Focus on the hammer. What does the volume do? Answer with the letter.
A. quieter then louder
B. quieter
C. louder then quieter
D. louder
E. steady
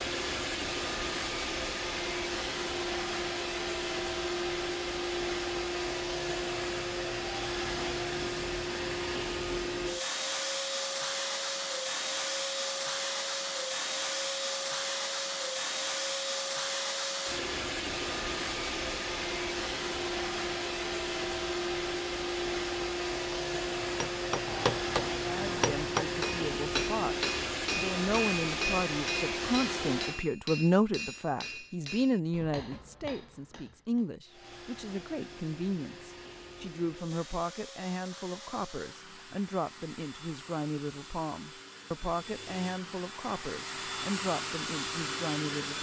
B.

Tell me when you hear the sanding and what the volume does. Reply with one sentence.
The sanding can't be heard in this clip.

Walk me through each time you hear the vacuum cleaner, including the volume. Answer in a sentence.
The vacuum cleaner can be heard from 0.0 to 30.2 s, at a steady volume; and from 34.2 to 45.7 s, getting louder.